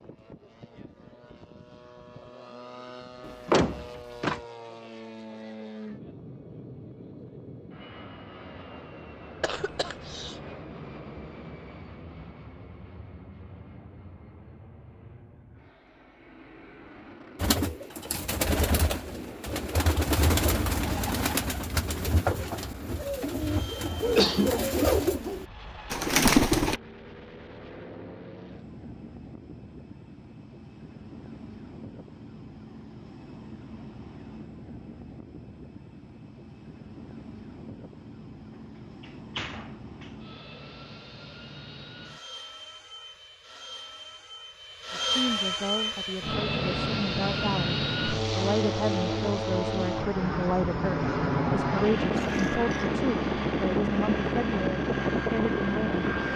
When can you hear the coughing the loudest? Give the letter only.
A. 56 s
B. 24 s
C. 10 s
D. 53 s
B.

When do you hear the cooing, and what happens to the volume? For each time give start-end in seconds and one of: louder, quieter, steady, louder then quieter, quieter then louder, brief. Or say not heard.
17.4-26.8 louder.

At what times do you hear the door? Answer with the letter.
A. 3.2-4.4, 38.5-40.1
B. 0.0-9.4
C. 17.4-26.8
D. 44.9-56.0
A.